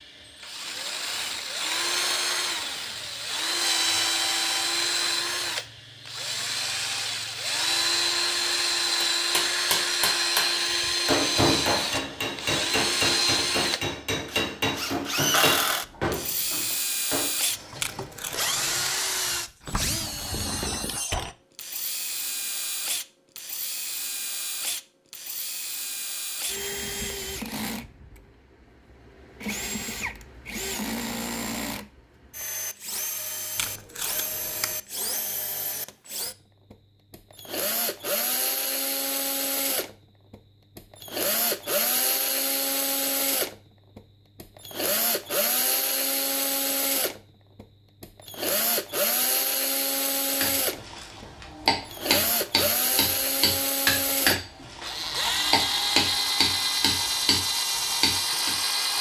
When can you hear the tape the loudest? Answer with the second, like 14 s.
18 s.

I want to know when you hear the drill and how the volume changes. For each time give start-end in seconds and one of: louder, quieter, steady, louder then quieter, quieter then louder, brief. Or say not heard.
0.0-58.9 quieter then louder.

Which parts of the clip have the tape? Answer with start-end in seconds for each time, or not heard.
17.8-18.9, 33.5-34.8.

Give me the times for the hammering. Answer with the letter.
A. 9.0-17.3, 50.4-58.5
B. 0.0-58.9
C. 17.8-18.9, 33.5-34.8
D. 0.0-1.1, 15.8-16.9
A.